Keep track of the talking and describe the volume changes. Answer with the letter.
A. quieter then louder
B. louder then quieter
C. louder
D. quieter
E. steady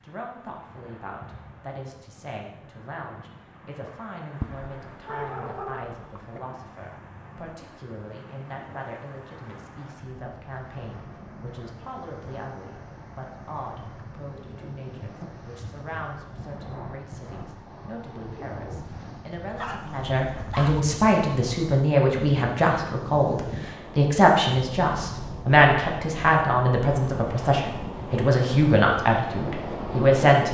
C.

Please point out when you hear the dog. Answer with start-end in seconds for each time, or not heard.
4.4-6.4, 19.6-20.8.